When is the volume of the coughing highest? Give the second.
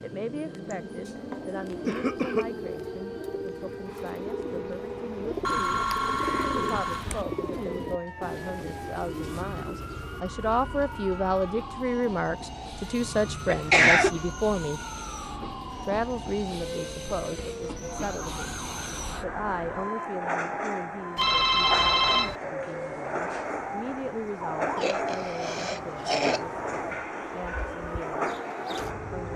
14 s.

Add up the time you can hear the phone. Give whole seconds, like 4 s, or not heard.
3 s.